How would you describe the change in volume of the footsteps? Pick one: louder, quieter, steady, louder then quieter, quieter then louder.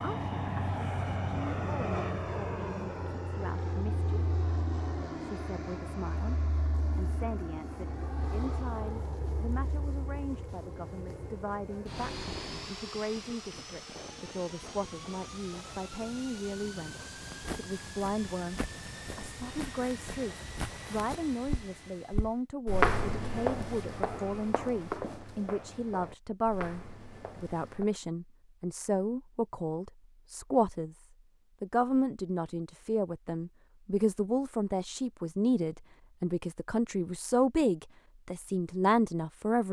louder then quieter.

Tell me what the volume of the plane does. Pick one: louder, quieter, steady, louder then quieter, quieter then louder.
quieter.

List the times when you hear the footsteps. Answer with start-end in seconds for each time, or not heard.
16.8-27.9.